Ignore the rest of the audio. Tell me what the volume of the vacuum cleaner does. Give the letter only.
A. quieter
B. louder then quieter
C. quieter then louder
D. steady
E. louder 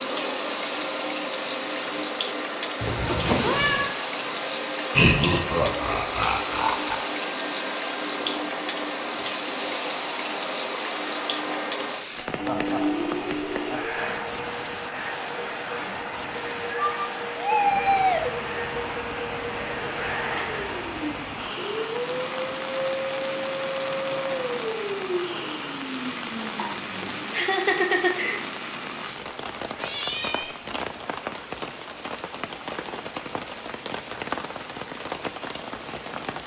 D.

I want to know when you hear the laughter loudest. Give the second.
5 s.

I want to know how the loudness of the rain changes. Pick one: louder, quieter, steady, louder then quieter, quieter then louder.
steady.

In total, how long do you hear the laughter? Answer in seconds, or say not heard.
5 s.